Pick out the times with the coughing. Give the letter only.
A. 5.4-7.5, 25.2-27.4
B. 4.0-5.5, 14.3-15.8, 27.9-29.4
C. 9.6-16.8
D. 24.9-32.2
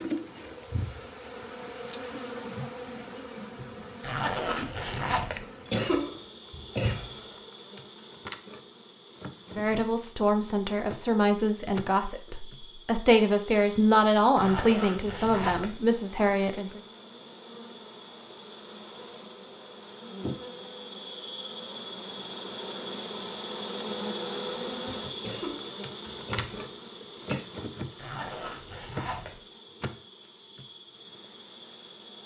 A.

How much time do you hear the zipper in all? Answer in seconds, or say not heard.
4 s.